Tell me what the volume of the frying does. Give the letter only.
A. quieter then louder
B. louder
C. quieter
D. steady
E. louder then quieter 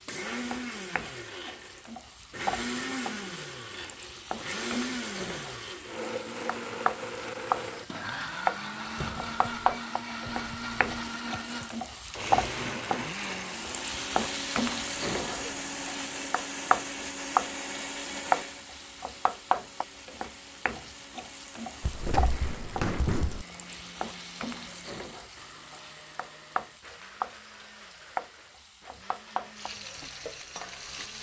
E.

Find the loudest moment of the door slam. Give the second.
23 s.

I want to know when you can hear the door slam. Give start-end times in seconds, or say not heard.
8.9-9.6, 21.8-23.4.